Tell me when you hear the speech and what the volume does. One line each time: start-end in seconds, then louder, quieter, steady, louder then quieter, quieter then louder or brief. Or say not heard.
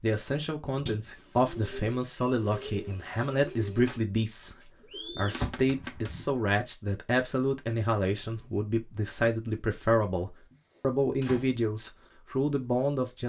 0.0-13.2 steady.